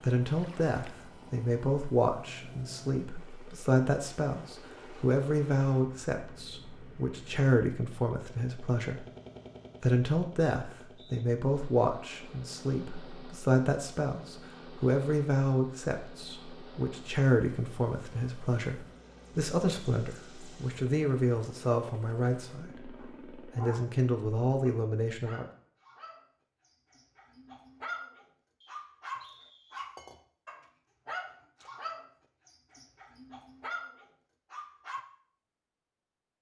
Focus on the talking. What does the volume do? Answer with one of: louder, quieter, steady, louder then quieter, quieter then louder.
steady.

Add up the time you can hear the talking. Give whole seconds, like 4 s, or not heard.
25 s.